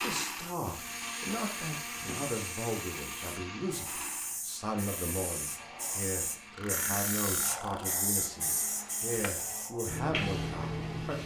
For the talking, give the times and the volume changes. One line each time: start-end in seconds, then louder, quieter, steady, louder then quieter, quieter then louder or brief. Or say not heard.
0.0-11.2 steady.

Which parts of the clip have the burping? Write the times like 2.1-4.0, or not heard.
1.0-2.4, 6.5-8.0.